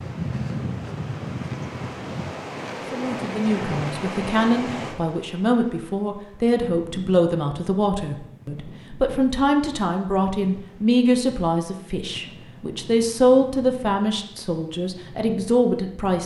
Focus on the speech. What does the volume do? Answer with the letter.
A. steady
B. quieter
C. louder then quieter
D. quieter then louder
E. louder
A.